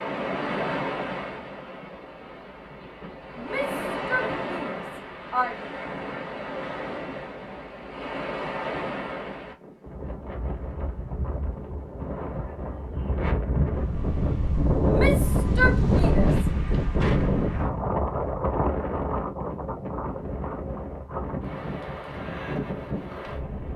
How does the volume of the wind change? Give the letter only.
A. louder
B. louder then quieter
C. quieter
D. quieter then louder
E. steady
B.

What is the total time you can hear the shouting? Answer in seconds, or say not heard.
4 s.